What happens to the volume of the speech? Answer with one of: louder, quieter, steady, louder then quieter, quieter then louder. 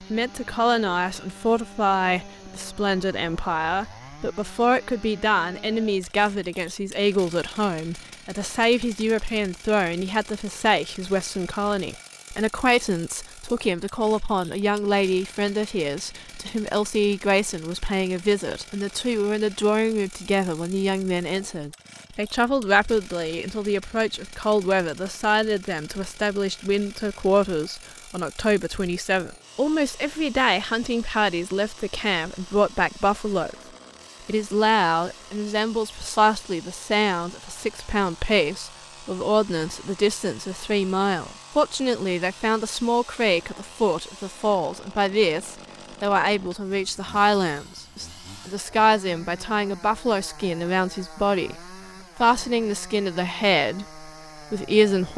steady.